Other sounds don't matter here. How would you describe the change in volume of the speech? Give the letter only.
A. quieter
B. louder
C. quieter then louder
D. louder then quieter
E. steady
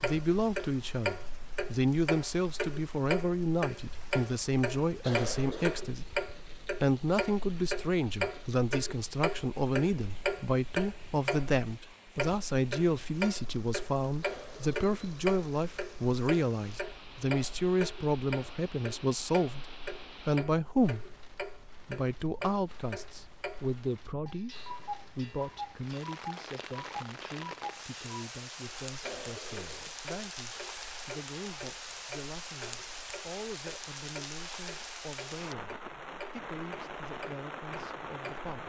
A.